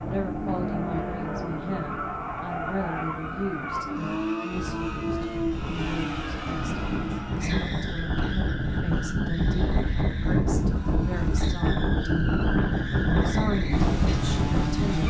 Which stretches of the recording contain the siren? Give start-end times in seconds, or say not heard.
not heard.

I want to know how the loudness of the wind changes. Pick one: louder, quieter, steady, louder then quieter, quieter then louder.
louder.